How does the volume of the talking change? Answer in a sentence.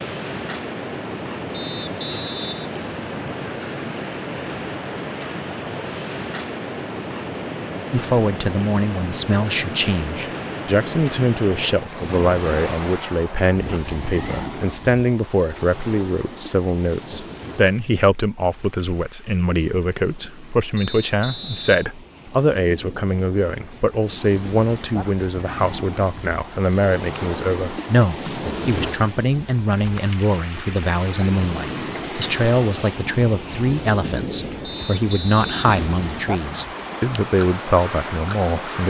The loudness of the talking stays about the same.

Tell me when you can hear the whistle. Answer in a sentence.
You can hear the whistle from 1.5 to 3.5 s, from 20.8 to 21.9 s and from 34.6 to 36.6 s.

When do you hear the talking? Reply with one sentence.
The talking can be heard from 7.9 to 38.8 s.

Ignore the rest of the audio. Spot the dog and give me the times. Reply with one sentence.
The dog can't be heard in this clip.